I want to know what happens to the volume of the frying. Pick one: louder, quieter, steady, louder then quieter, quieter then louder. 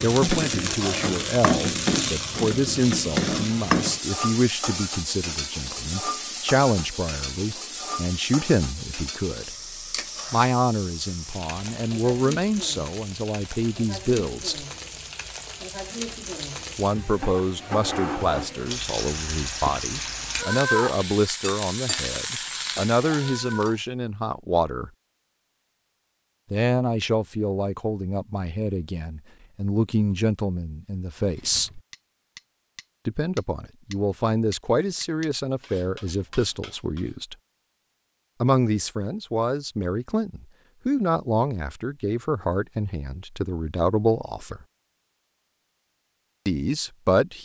quieter then louder.